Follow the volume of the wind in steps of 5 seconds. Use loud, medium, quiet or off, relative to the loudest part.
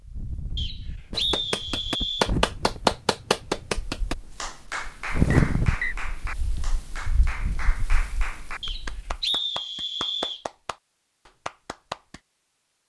medium, loud, off.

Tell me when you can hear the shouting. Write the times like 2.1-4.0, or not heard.
not heard.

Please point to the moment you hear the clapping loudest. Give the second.
3 s.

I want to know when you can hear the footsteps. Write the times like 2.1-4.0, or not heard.
not heard.